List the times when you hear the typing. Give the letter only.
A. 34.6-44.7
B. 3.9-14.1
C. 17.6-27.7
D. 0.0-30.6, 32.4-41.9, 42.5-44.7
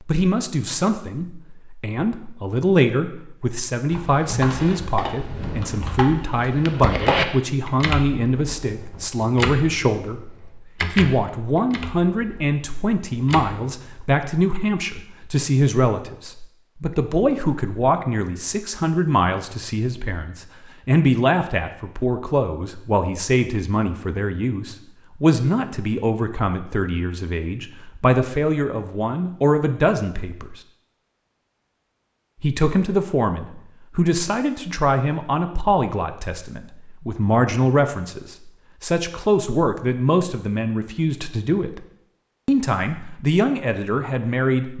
B.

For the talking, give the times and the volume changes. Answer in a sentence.
You can hear the talking from 0.0 to 30.6 s, at a steady volume; from 32.4 to 41.9 s, at a steady volume; and briefly from 42.5 to 44.7 s.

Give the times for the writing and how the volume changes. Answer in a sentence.
You can't hear the writing here.